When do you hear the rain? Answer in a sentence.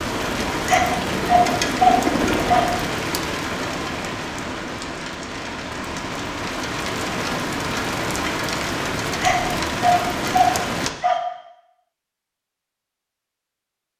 You can hear the rain from 0.0 to 10.9 s.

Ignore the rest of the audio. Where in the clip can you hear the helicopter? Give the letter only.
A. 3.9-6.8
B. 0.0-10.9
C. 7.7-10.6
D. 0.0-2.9
D.